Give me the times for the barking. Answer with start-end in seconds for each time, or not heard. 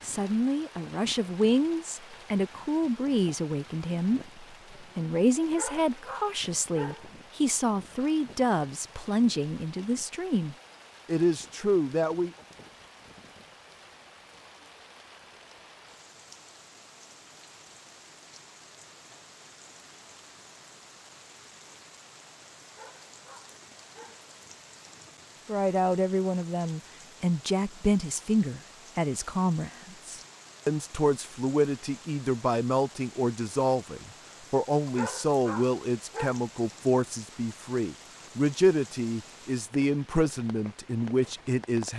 5.5-7.0, 22.6-24.2, 34.9-36.4.